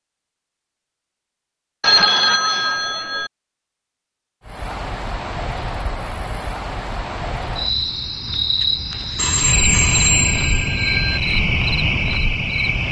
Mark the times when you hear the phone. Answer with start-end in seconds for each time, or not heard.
1.8-3.3, 9.2-11.2.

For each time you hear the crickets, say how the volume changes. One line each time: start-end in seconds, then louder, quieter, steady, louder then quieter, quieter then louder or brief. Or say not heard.
4.4-12.8 louder.